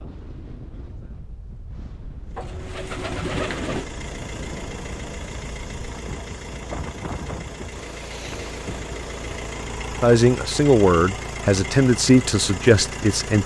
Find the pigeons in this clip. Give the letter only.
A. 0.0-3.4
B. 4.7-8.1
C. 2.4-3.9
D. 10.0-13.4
C.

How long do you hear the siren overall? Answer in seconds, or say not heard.
not heard.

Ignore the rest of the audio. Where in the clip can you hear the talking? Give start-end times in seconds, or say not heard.
10.0-13.4.